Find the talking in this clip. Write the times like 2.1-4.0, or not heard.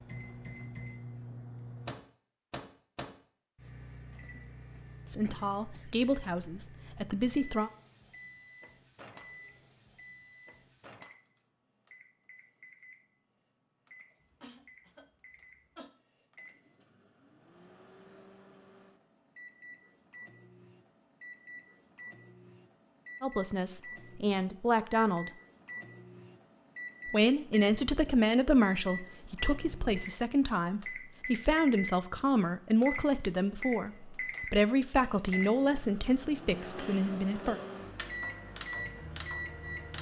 5.1-7.7, 23.2-25.3, 27.1-37.6.